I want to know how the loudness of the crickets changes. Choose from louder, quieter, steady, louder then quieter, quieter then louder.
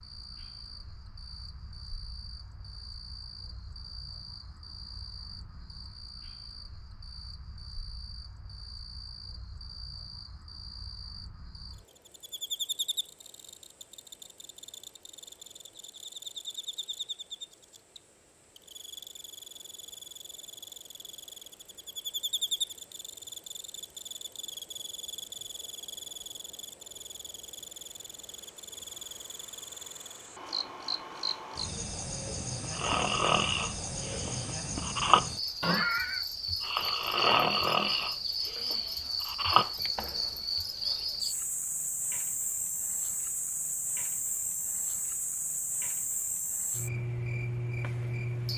louder.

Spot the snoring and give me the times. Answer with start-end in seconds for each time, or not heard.
32.7-40.2.